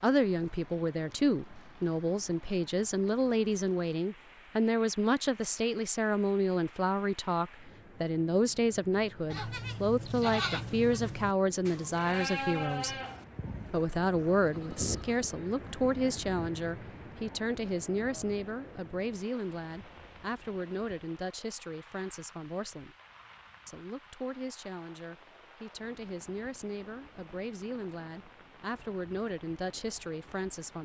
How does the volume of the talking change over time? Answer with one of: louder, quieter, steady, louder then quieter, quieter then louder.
quieter.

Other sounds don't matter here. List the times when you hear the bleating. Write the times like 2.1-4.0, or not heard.
9.3-16.5.